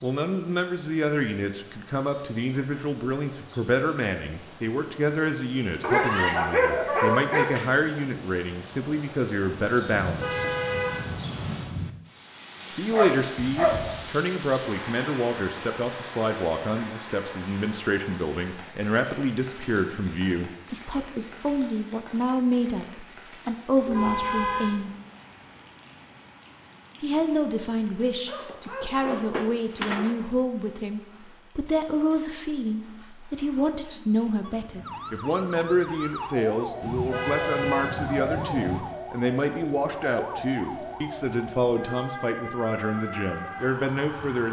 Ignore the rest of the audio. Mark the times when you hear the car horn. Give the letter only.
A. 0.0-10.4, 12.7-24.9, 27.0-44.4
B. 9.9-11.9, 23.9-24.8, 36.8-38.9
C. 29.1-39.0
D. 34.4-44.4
B.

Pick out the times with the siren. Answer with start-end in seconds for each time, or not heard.
34.4-44.4.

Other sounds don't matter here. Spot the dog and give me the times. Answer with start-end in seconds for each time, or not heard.
5.8-7.7, 12.9-14.1, 28.2-30.1, 38.0-38.9.